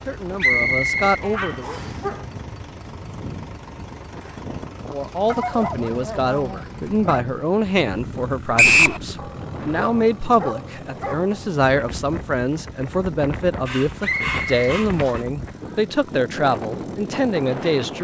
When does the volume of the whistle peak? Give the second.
9 s.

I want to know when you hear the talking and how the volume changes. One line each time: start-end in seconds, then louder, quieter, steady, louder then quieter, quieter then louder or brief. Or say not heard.
0.0-1.8 brief
4.9-17.9 steady.